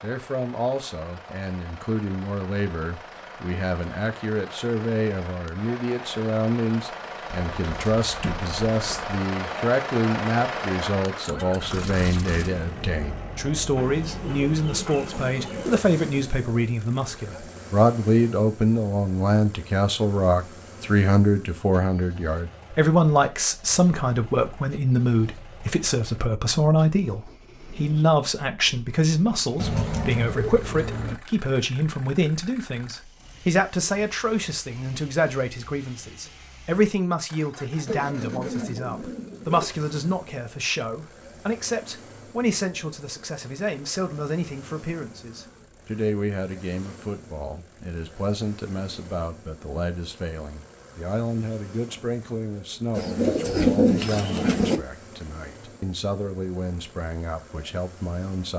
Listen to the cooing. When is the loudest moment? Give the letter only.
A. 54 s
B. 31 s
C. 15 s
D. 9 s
A.